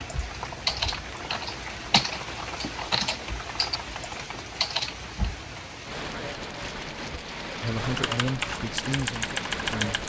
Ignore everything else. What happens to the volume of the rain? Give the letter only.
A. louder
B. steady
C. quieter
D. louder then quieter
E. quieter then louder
B.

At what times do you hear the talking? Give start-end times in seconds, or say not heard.
7.6-10.0.